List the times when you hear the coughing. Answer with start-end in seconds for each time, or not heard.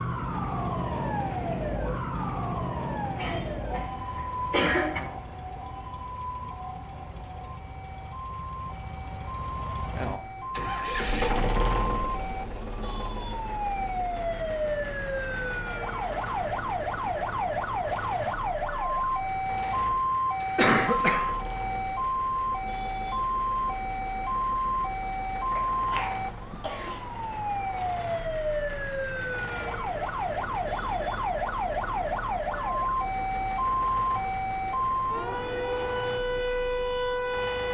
3.1-5.0, 20.6-21.4, 25.6-27.0.